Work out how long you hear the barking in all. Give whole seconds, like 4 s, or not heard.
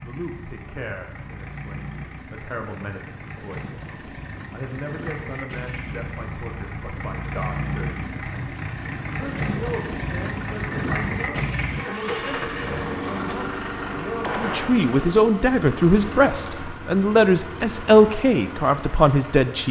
not heard.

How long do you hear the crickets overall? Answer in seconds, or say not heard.
not heard.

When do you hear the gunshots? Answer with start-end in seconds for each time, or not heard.
14.2-14.8.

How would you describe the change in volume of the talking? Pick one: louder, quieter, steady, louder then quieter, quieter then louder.
louder.